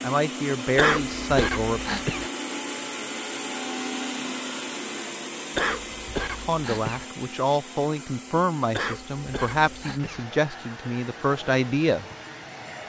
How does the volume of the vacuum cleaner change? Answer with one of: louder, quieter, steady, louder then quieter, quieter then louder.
quieter.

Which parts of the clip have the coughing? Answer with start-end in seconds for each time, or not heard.
0.8-2.3, 5.5-7.0, 8.7-10.2.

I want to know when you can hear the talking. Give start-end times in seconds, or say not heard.
0.0-1.8, 6.3-12.2.